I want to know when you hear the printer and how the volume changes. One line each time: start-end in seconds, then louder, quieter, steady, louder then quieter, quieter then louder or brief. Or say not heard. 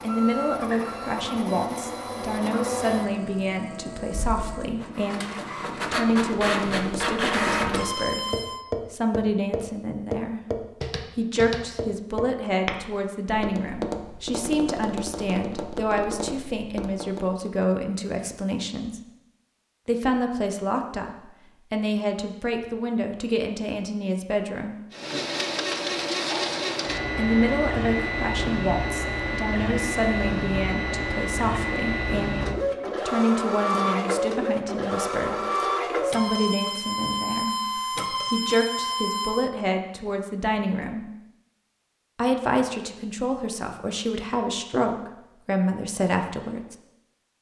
0.0-8.6 quieter then louder
24.9-39.5 steady.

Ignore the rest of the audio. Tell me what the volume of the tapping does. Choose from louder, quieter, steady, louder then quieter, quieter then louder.
louder then quieter.